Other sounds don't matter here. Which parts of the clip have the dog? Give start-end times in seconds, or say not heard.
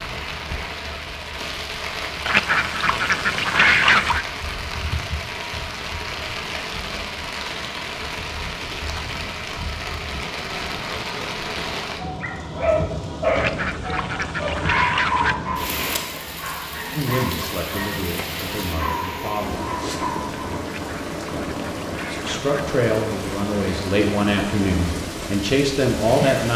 12.2-20.5.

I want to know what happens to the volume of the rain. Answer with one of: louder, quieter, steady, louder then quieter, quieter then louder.
steady.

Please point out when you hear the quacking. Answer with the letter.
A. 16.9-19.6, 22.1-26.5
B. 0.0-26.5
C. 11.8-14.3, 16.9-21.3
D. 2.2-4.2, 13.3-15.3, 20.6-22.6
D.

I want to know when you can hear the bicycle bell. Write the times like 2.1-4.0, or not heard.
not heard.